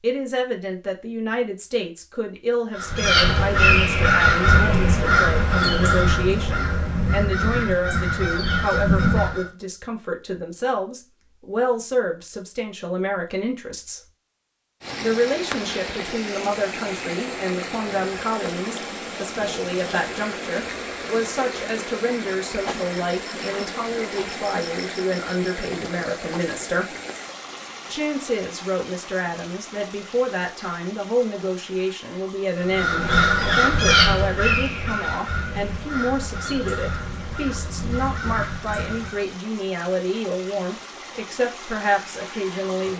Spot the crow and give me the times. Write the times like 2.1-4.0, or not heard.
2.8-9.4, 32.6-39.4.